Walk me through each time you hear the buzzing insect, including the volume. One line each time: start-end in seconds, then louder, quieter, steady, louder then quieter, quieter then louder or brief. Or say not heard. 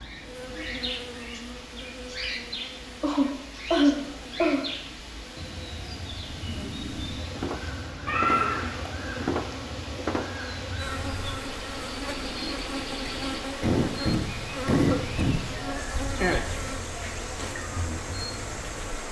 0.1-19.0 louder.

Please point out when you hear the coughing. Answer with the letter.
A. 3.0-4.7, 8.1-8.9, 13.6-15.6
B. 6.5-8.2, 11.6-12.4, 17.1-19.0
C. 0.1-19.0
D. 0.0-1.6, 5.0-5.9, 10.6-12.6
A.